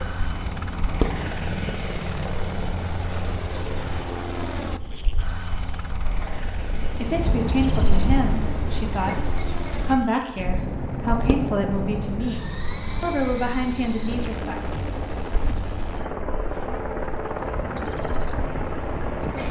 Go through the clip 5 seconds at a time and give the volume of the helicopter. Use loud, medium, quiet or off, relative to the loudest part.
loud, medium, loud, loud.